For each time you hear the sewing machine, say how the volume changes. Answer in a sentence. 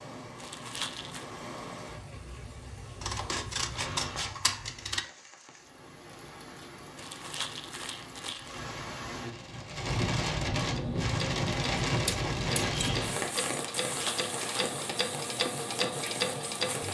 The sewing machine can be heard from 10.7 to 16.8 s, getting louder.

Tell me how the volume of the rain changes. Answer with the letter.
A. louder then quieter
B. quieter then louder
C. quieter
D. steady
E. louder
A.